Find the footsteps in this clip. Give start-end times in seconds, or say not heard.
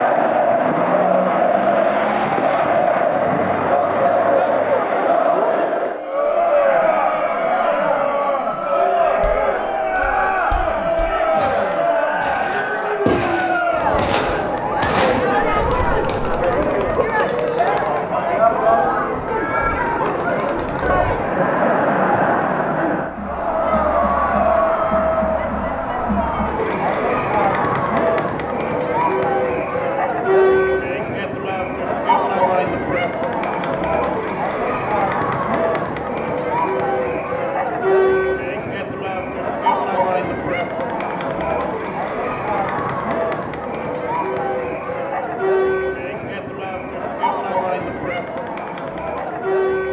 9.0-16.4.